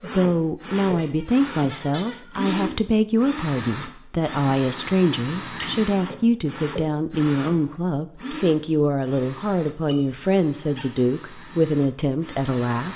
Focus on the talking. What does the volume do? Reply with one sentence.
The loudness of the talking stays about the same.